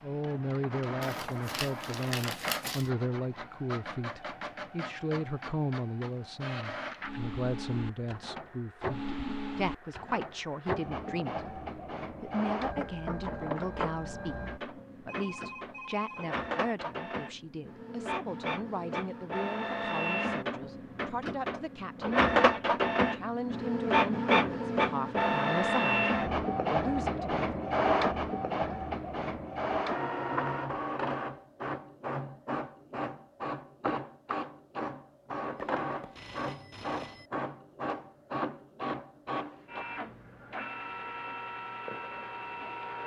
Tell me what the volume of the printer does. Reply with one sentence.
The volume of the printer goes up, then down.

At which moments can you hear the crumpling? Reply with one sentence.
The crumpling can be heard from 1.0 to 2.9 s.